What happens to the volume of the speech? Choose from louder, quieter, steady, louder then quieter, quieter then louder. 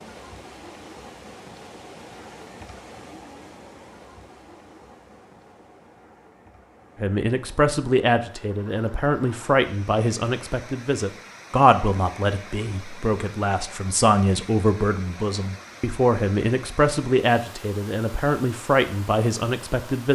steady.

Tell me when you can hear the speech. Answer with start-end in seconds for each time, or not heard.
7.0-20.0.